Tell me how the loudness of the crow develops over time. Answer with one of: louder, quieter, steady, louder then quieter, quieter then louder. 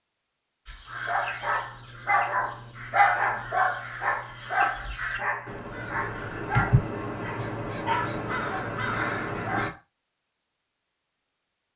louder.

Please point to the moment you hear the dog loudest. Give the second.
3 s.